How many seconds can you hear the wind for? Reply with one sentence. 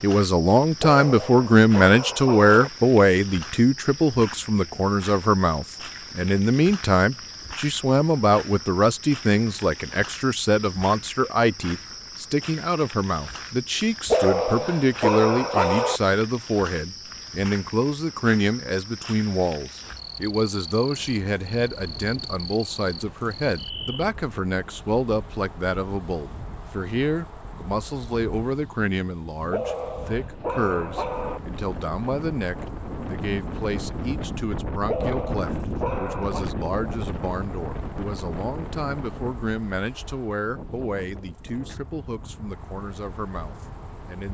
You can hear the wind for 23 seconds altogether.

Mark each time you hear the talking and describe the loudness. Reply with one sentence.
You can hear the talking from 0.0 to 44.2 s, getting quieter.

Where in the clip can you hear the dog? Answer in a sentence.
The dog can be heard from 0.8 to 2.7 s, from 14.1 to 16.0 s, from 29.5 to 31.4 s and from 34.9 to 36.5 s.